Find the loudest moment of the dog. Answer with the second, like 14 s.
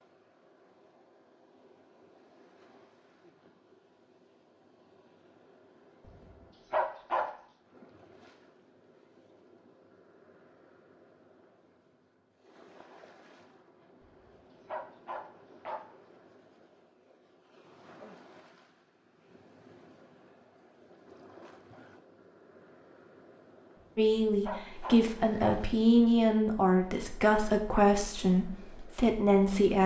7 s.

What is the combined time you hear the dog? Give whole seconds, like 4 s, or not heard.
5 s.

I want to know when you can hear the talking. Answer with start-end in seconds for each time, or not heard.
23.9-29.8.